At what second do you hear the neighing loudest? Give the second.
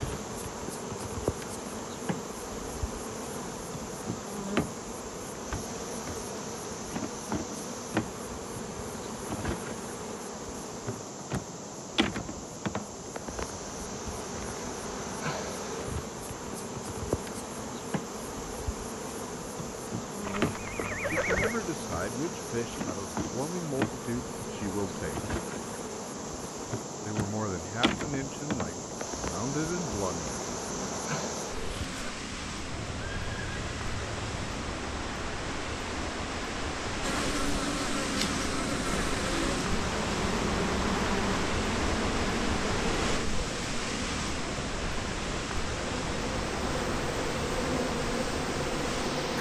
21 s.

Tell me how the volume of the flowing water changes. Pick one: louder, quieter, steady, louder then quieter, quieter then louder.
louder.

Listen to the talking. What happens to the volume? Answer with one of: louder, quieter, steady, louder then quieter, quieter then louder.
steady.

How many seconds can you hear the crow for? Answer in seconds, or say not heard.
not heard.